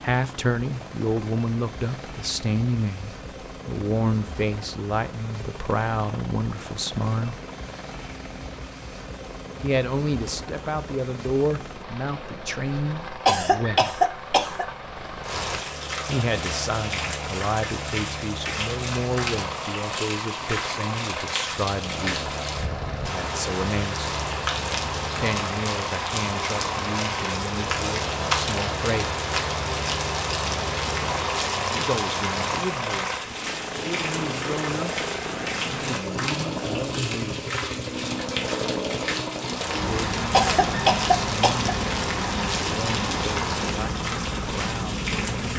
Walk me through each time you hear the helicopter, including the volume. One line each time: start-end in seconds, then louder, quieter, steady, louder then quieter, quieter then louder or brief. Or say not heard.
0.0-45.5 louder.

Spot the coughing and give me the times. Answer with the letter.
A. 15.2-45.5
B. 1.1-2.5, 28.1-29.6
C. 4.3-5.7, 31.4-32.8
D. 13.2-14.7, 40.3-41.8
D.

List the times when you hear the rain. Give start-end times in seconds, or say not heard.
15.2-45.5.